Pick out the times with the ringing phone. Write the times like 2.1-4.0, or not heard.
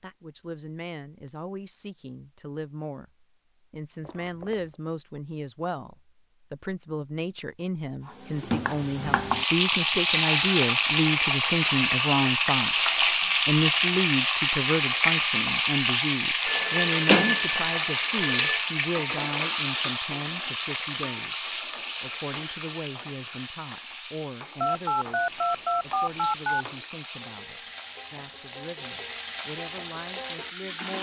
4.0-4.8, 16.4-18.6, 24.6-26.7.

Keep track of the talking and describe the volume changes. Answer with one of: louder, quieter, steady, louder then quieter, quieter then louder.
louder then quieter.